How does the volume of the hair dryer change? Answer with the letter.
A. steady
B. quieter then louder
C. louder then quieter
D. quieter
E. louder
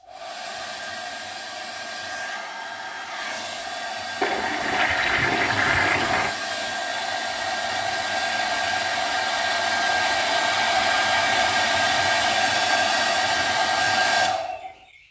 E.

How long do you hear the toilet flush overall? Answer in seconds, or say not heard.
2 s.